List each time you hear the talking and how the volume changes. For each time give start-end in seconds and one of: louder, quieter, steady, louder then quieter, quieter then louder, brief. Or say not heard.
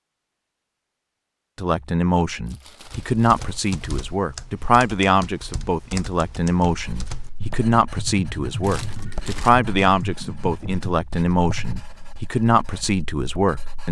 1.6-13.8 steady.